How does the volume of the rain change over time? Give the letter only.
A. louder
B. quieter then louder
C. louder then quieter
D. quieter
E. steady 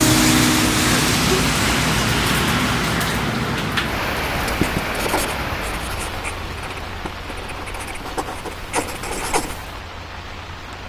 D.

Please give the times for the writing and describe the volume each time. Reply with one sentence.
You can hear the writing from 4.4 to 9.8 s, getting quieter then louder.